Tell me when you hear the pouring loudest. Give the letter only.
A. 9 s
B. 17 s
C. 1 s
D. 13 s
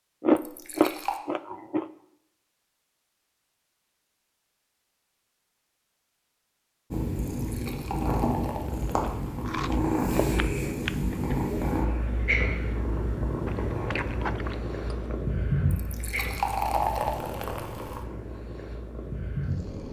B.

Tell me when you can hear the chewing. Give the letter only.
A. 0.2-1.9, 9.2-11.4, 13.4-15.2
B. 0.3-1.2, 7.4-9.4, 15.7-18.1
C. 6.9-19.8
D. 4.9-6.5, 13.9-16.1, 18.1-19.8
A.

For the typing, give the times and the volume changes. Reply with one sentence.
The typing can't be heard in this clip.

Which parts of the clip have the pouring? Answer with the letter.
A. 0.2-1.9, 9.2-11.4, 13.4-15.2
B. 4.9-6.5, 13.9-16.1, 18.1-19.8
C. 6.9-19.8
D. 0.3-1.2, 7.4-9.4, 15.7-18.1
D.